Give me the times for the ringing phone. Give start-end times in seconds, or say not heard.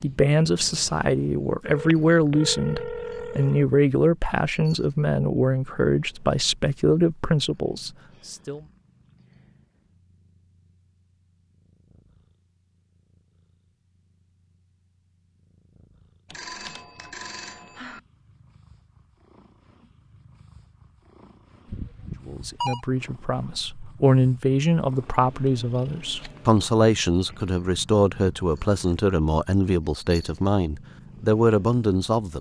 1.6-3.6, 16.3-18.0, 21.6-22.9.